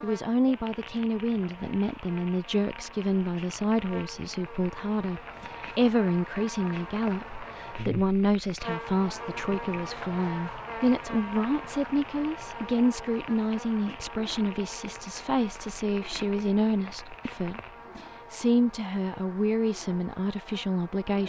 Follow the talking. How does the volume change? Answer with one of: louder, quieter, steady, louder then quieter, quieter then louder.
steady.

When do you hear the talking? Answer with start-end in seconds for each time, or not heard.
0.0-21.2.